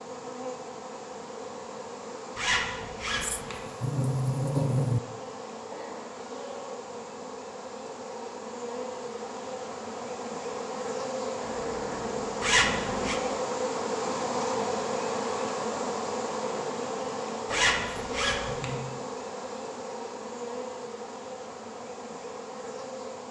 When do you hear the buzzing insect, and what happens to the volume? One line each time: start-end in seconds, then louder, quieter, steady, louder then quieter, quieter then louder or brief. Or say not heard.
0.0-23.2 louder then quieter.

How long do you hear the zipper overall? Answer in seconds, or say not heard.
3 s.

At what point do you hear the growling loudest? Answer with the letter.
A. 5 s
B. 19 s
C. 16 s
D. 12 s
A.